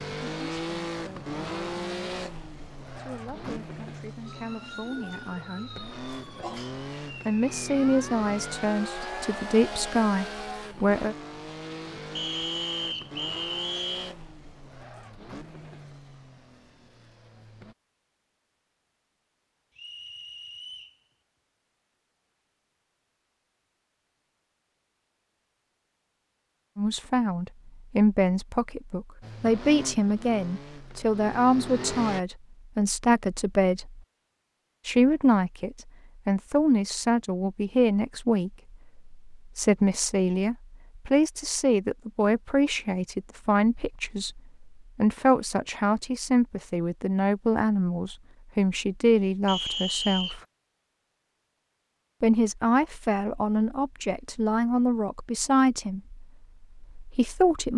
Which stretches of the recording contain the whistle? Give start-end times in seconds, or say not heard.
12.2-14.2, 19.8-21.0, 49.5-50.4.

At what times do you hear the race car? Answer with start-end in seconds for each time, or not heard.
0.0-17.8, 29.2-32.2.